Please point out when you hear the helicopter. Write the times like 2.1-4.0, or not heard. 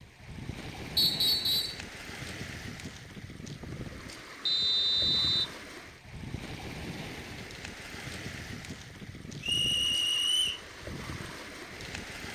not heard.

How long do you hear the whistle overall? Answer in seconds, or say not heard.
3 s.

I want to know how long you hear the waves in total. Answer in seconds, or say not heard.
12 s.